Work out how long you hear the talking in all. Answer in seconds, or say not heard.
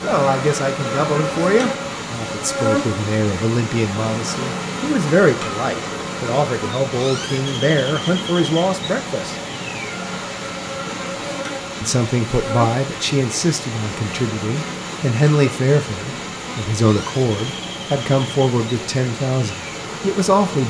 18 s.